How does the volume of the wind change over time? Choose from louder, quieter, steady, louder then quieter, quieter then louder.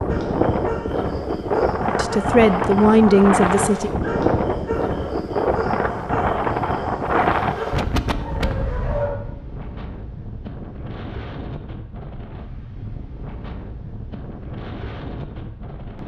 quieter.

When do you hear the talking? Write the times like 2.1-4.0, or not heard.
1.9-3.9.